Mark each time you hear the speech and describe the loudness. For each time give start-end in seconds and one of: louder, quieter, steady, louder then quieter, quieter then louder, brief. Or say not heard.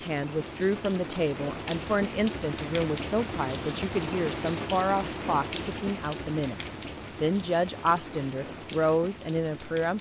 0.0-9.9 steady.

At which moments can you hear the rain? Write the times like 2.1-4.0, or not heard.
0.0-9.9.